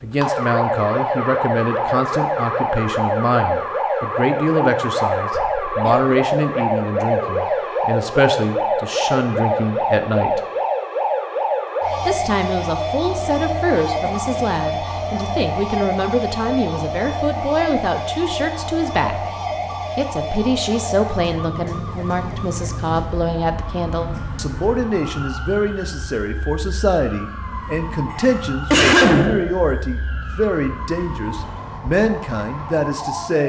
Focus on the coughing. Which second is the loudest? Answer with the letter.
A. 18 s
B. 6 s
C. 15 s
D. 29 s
D.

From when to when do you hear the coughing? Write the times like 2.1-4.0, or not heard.
5.3-6.2, 14.0-14.6, 28.1-29.5.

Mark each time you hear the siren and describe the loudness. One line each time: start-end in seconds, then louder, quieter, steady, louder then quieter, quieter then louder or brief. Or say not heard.
0.0-33.4 quieter.